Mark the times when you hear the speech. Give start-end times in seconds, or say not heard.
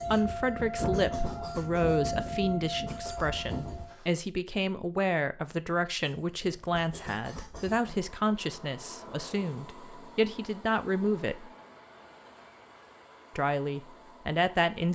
0.1-11.5, 13.3-14.9.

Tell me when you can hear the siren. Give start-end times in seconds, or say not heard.
0.0-3.9.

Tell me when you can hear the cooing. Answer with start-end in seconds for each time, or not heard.
not heard.